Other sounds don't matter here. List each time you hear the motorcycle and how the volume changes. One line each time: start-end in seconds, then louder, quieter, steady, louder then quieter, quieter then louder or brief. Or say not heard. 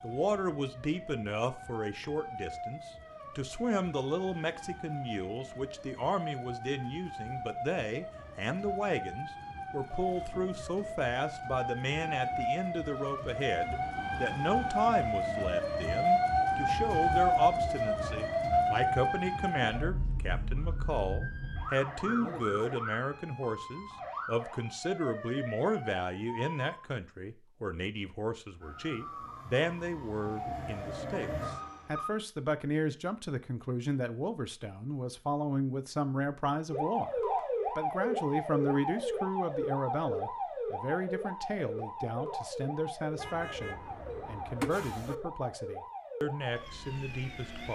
not heard.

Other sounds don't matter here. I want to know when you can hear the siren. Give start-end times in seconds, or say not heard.
0.0-26.8, 28.6-32.1, 36.7-47.6.